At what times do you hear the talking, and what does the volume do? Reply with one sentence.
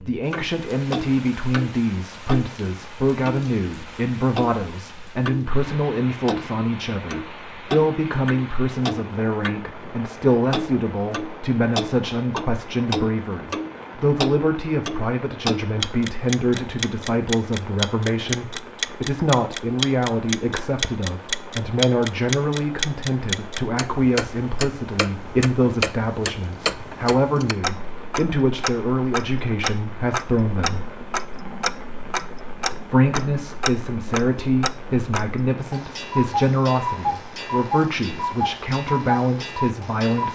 The talking can be heard from 0.0 to 30.8 s, at a steady volume; and from 32.7 to 40.3 s, at a steady volume.